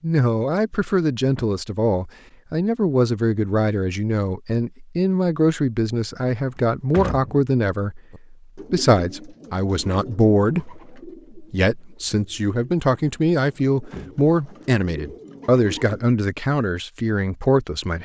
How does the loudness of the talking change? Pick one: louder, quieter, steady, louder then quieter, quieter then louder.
steady.